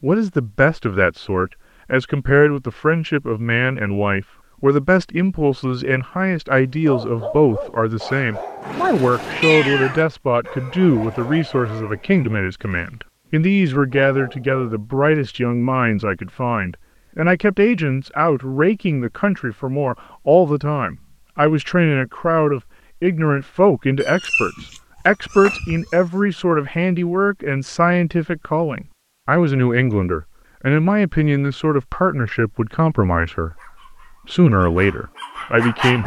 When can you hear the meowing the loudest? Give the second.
10 s.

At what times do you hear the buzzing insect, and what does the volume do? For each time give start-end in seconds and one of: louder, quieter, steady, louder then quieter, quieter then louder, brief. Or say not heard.
not heard.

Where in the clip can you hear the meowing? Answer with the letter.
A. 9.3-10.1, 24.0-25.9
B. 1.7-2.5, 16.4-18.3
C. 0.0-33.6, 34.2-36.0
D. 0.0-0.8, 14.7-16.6
A.